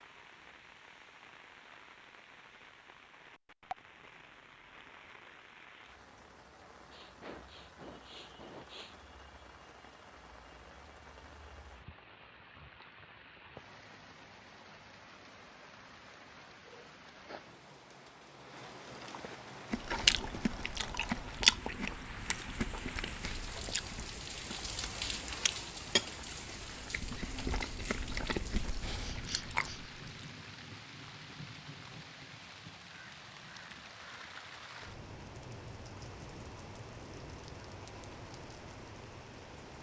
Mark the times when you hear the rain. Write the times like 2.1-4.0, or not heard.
0.0-39.7.